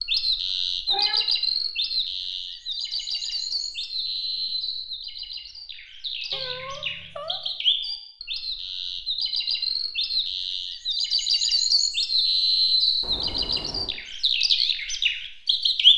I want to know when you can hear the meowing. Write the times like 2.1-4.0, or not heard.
0.8-1.3, 6.3-7.4, 13.0-13.9.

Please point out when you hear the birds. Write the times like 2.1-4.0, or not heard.
0.0-15.9.